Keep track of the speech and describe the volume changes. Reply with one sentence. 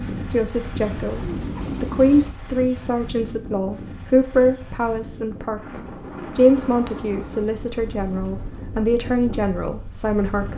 The loudness of the speech stays about the same.